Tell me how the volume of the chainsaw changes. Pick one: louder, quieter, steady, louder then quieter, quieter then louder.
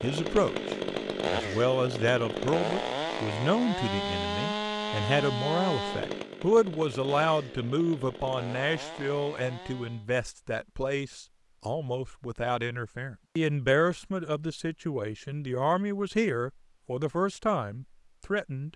quieter.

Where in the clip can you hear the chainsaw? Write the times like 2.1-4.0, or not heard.
0.0-10.1.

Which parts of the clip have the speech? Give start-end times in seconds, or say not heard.
0.0-18.7.